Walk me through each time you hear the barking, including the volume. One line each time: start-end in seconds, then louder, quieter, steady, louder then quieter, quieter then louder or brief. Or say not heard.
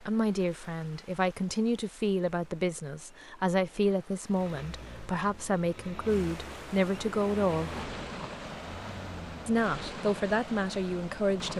not heard.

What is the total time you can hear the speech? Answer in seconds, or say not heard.
10 s.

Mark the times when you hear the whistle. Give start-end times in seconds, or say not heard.
not heard.